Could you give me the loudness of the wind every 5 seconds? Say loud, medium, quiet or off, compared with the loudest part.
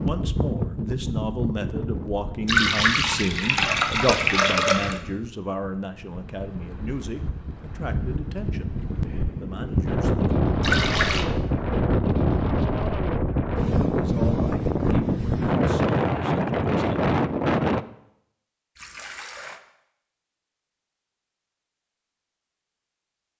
medium, medium, loud, loud, off.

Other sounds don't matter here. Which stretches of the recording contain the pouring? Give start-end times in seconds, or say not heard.
2.5-5.0, 10.6-11.2, 18.8-19.6.